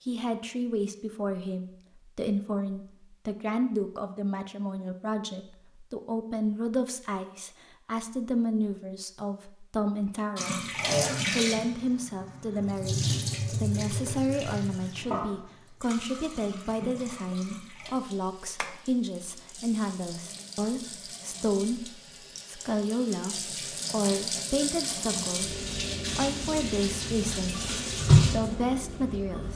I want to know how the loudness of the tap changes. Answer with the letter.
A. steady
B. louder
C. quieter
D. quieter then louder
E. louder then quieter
D.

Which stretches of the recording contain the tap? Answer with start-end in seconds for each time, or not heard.
10.3-29.5.